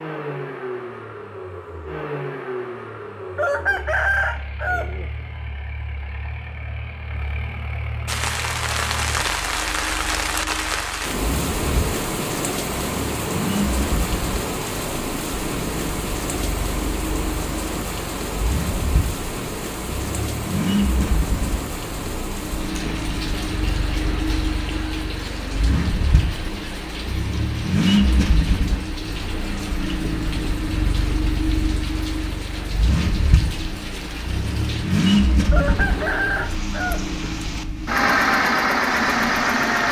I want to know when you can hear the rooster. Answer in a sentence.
You can hear the rooster from 3.4 to 5.0 s and from 35.5 to 37.2 s.